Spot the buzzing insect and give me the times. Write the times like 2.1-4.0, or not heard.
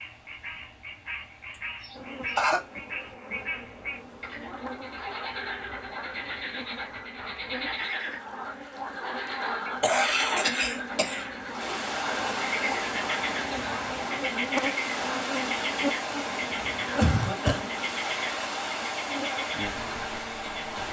1.9-20.8.